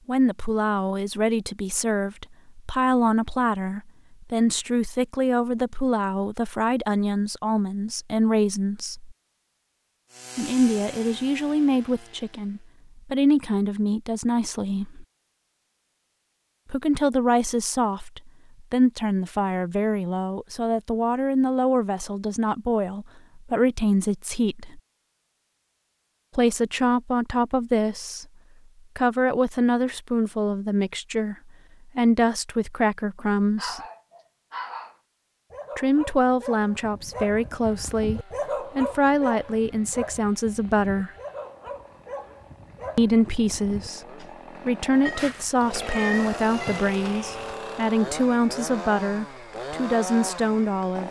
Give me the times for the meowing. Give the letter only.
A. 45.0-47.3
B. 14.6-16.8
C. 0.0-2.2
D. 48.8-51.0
A.